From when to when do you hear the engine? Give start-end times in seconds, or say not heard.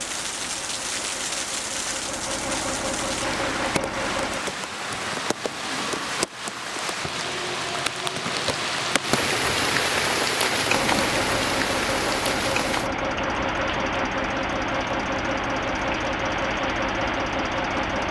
0.0-4.5, 10.7-18.0.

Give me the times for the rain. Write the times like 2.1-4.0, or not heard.
0.0-18.0.